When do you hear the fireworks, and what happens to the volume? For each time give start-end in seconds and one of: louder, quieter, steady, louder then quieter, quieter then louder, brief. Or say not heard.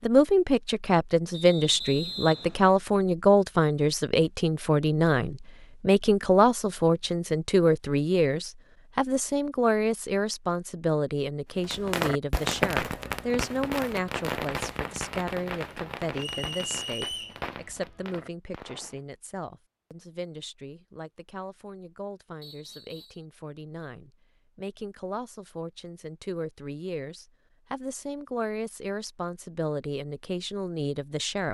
11.6-19.0 quieter.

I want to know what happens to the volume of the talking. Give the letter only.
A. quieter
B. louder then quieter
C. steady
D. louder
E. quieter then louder
E.